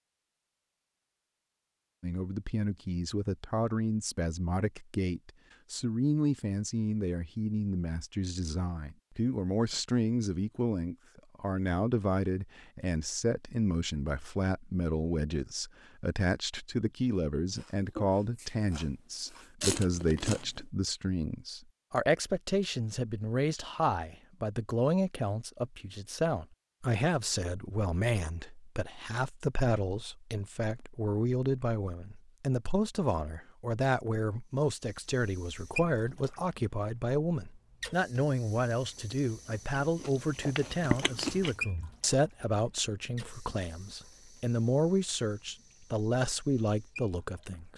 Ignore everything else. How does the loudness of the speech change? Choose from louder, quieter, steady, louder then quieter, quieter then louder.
steady.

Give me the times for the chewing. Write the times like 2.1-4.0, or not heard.
17.6-20.6, 38.8-41.5.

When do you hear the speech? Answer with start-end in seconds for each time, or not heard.
2.0-47.7.